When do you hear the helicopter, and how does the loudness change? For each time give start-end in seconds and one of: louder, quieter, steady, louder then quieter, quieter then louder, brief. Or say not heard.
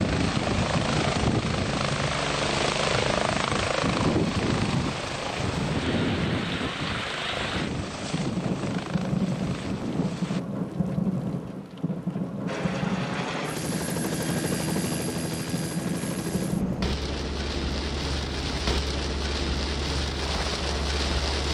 0.0-10.4 quieter
12.4-21.5 quieter.